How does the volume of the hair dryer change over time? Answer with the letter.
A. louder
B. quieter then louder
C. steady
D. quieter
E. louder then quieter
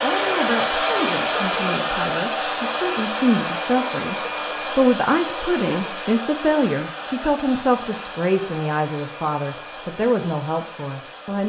D.